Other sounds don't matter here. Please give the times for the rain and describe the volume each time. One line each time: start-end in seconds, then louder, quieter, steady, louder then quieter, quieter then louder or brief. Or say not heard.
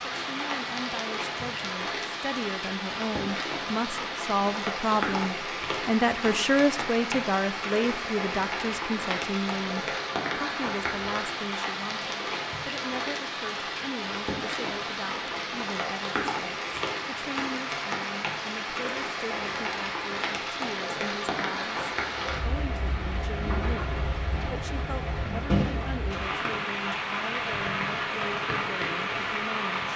0.0-29.9 steady.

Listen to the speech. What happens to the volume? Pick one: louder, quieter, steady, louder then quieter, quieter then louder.
quieter.